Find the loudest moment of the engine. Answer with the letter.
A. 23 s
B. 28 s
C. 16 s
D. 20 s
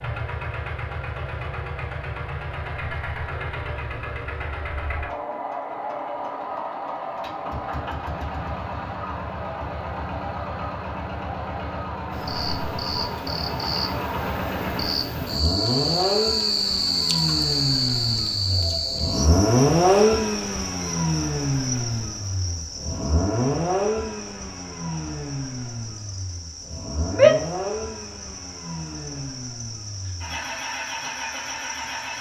D.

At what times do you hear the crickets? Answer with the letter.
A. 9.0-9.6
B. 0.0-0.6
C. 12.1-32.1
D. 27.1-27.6
C.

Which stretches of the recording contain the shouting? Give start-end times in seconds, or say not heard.
27.1-27.6.